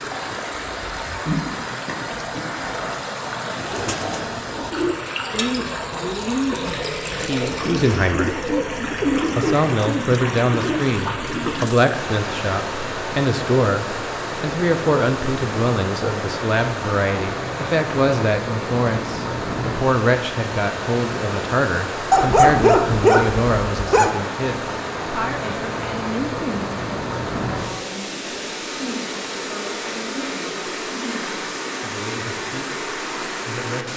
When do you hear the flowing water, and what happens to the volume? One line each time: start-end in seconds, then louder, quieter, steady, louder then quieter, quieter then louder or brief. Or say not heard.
0.0-33.9 steady.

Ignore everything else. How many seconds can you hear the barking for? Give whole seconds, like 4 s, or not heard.
2 s.